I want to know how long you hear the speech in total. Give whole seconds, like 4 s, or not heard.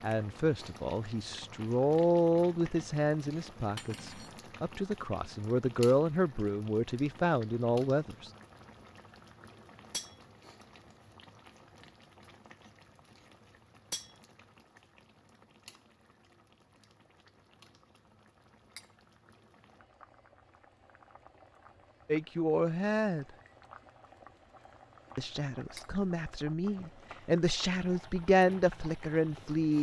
14 s.